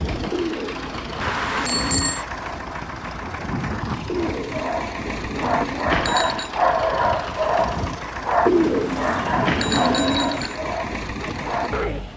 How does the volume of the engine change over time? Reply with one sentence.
The loudness of the engine stays about the same.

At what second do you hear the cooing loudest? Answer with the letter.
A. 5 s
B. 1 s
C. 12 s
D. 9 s
D.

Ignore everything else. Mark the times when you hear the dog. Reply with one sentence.
You can hear the dog from 4.1 to 12.1 s.